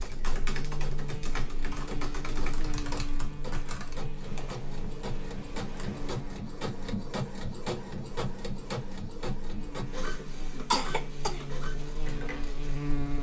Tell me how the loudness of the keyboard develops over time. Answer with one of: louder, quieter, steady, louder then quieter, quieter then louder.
quieter.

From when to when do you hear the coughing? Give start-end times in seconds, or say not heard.
10.7-11.4.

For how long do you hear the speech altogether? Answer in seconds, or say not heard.
not heard.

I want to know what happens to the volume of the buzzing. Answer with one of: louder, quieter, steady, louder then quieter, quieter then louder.
quieter then louder.